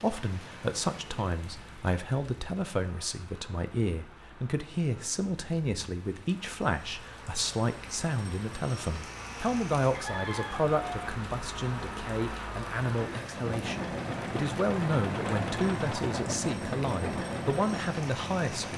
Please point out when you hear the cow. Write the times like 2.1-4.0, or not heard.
not heard.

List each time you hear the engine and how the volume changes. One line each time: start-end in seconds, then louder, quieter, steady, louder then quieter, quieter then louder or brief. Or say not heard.
0.1-18.7 louder.